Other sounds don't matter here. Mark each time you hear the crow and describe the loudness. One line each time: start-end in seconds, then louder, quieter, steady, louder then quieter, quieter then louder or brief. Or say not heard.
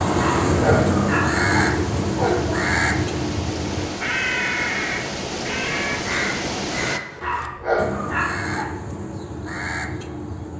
0.0-10.5 quieter.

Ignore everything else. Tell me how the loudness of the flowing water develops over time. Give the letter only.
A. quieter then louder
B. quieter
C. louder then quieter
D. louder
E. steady
D.